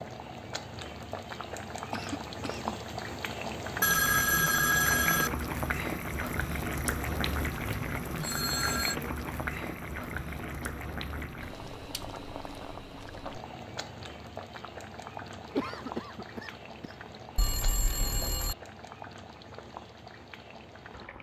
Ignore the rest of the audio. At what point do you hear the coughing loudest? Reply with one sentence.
The volume of the coughing peaks at 16 seconds.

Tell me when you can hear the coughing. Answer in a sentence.
You can hear the coughing from 1.9 to 2.8 s and from 15.5 to 16.9 s.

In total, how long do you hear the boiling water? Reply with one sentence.
The boiling water can be heard for 21 seconds in total.